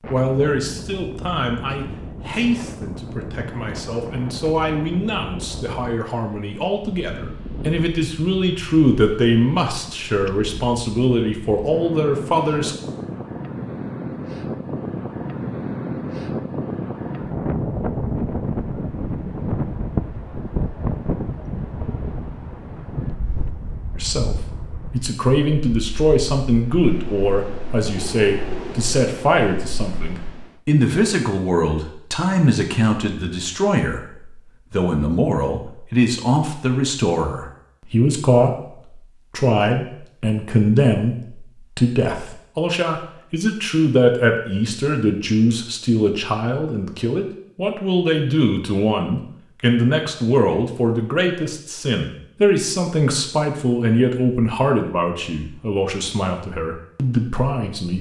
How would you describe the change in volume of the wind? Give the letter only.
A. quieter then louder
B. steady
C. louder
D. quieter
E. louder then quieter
E.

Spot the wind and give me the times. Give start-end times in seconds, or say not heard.
0.0-30.5.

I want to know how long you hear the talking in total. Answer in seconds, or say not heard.
47 s.